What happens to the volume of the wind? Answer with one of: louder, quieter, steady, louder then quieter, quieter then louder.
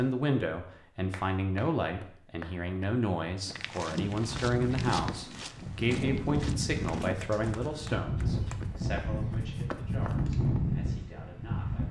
louder.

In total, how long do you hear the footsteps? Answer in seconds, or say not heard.
7 s.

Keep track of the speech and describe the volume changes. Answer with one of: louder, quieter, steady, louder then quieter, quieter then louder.
quieter.